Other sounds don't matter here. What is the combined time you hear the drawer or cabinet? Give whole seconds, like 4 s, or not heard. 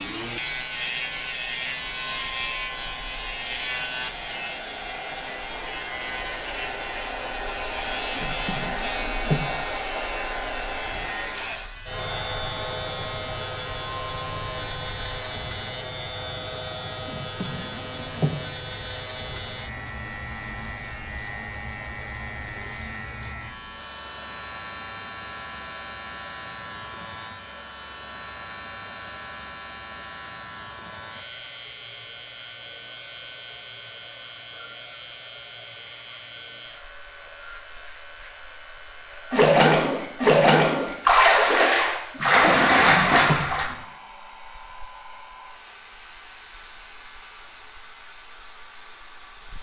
4 s.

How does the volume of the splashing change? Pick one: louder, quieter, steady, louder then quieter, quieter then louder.
steady.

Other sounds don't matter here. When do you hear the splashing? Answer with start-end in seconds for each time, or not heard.
39.3-43.8.